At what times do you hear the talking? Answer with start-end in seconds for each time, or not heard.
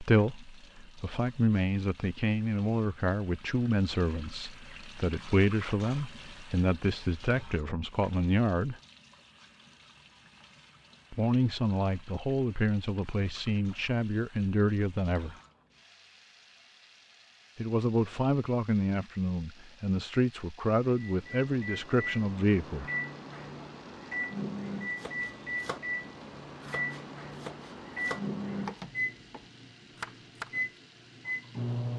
0.0-8.8, 11.1-15.3, 17.6-22.9.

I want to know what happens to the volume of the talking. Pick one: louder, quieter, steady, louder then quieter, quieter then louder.
steady.